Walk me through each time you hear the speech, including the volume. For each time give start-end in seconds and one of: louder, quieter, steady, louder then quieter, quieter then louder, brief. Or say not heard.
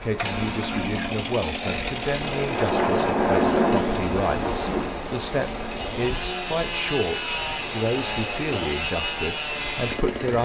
0.0-10.3 steady.